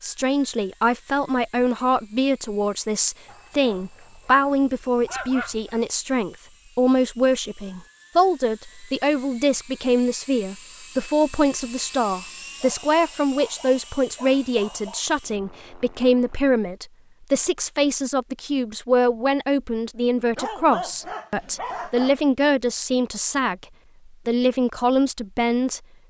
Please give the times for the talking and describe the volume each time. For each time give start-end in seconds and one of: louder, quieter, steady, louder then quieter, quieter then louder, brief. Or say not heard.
0.0-23.6 steady
24.2-25.8 brief.